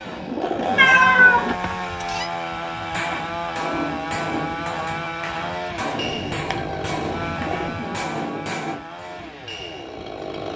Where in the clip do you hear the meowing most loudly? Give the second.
1 s.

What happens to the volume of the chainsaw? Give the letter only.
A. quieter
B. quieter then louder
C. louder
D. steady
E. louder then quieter
A.